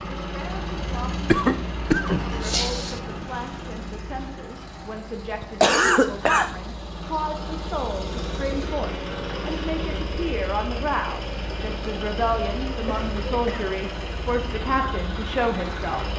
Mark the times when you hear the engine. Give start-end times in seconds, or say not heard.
0.0-16.1.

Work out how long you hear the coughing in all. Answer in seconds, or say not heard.
4 s.